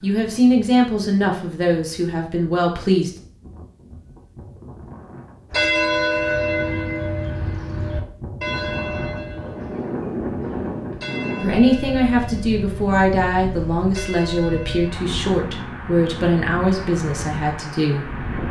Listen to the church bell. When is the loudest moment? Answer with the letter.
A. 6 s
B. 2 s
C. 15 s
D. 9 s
A.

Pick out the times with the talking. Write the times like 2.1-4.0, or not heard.
0.0-3.1, 11.4-18.1.